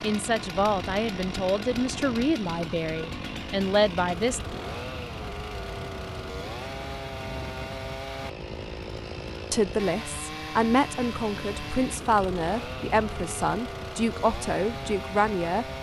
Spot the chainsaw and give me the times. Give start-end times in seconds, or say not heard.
0.0-15.7.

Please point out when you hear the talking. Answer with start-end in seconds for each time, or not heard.
0.0-4.4, 9.5-15.7.